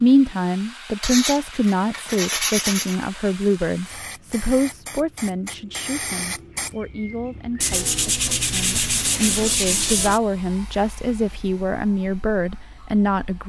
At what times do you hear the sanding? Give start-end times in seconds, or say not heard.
1.0-3.0, 7.6-10.2.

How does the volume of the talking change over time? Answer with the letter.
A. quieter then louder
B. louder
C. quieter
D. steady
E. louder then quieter
A.